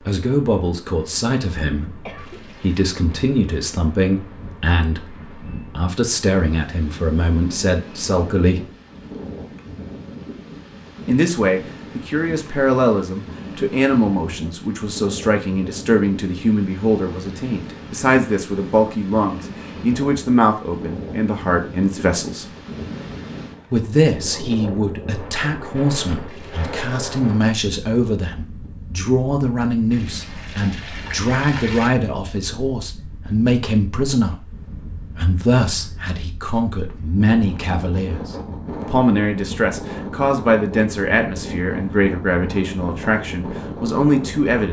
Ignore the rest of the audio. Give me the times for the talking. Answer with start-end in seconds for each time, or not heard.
0.0-8.7, 11.1-22.4, 23.7-44.6.